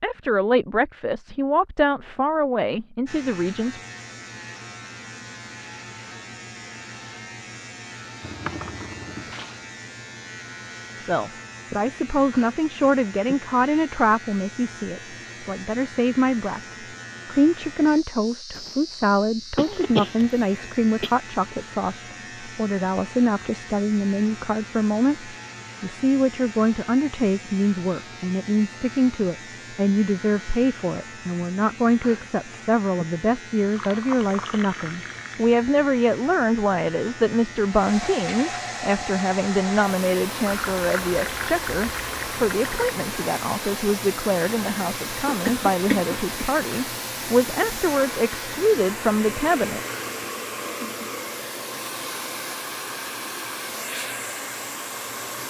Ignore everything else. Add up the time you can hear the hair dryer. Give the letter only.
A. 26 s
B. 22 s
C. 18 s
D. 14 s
C.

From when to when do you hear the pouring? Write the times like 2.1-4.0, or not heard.
8.2-9.6, 33.7-35.5, 40.5-43.0.